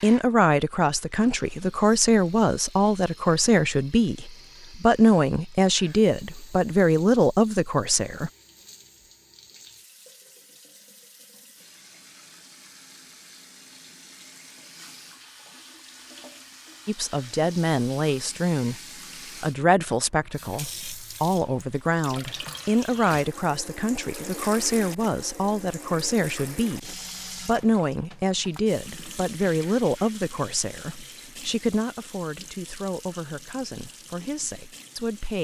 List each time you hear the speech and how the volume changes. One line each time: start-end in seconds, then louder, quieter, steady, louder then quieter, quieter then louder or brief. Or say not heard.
0.0-8.3 steady
16.9-18.8 brief
19.4-35.3 quieter.